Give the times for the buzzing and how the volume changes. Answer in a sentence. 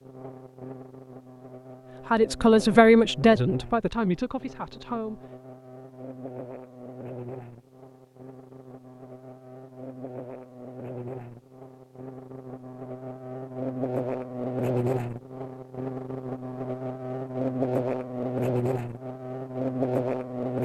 You can hear the buzzing from 0.0 to 20.5 s, getting louder.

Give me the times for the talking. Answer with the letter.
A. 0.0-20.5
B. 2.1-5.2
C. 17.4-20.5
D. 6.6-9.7
B.